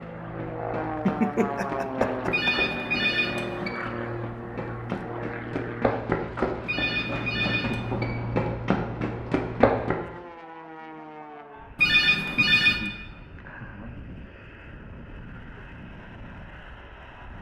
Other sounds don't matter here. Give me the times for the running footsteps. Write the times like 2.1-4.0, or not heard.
0.0-10.0.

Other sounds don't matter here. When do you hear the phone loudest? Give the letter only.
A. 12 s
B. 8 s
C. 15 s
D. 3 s
A.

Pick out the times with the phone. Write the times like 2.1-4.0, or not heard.
2.3-3.7, 6.7-8.1, 11.8-12.8.